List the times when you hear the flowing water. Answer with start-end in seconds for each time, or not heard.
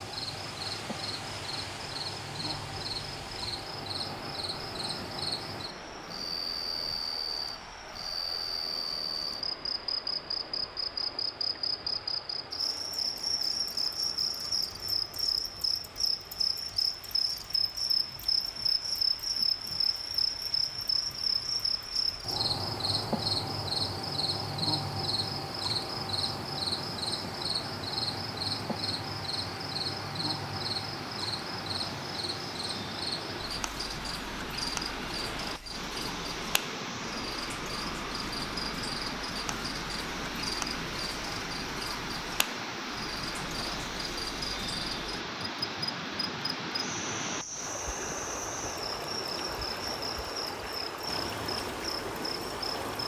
0.0-53.0.